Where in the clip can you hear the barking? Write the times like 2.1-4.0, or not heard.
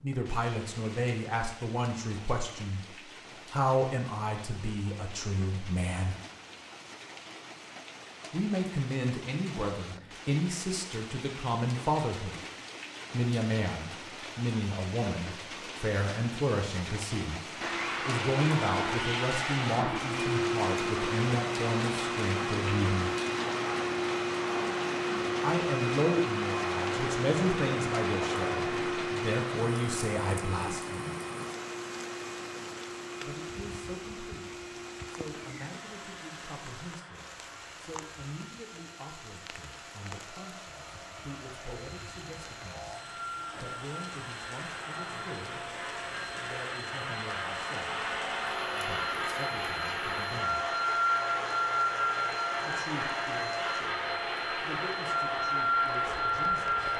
not heard.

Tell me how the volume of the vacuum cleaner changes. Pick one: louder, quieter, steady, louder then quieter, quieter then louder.
quieter then louder.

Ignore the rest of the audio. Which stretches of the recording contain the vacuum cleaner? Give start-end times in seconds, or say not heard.
17.6-56.9.